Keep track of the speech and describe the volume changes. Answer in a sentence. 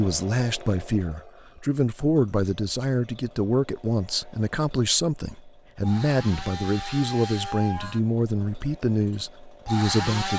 The volume of the speech stays about the same.